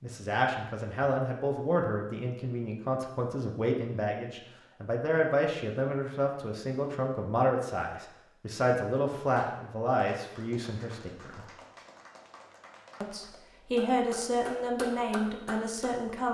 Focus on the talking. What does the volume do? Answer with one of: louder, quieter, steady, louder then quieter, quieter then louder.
steady.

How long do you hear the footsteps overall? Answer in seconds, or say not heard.
not heard.